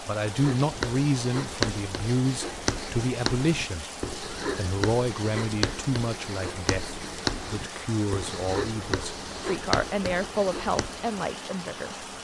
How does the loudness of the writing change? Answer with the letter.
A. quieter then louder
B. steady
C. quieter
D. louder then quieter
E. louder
B.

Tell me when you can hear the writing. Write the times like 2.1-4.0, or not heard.
0.2-11.0.